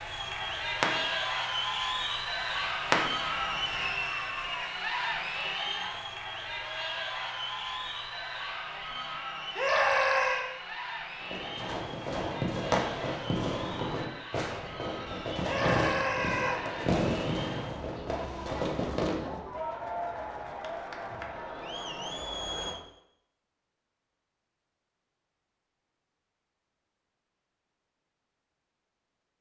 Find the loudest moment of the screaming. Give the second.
10 s.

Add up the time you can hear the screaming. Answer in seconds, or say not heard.
2 s.